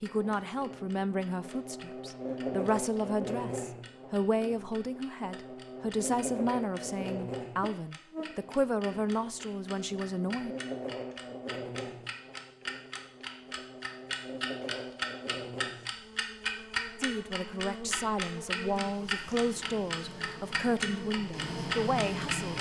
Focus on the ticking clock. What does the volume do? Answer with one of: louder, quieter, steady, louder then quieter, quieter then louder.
louder.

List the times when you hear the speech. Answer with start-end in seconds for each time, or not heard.
0.0-10.6, 17.0-22.5.